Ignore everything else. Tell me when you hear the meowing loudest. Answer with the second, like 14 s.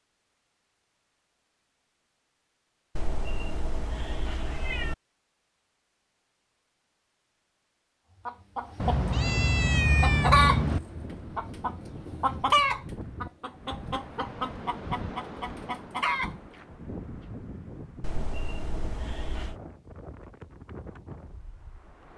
10 s.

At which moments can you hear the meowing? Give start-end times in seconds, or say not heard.
3.0-5.0, 8.8-10.8, 18.0-19.6.